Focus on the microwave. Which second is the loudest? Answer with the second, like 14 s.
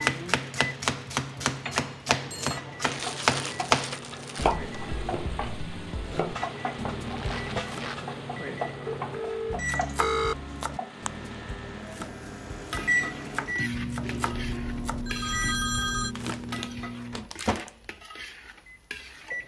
13 s.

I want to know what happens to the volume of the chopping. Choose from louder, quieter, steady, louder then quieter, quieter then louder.
quieter.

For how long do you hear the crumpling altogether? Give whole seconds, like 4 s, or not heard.
4 s.